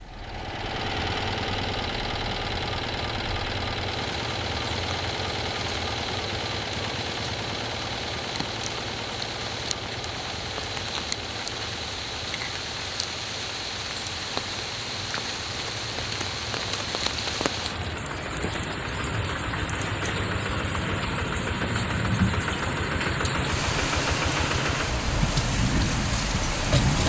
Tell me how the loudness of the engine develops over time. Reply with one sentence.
The volume of the engine goes down, then up.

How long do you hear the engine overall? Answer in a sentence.
The engine can be heard for 27 seconds in total.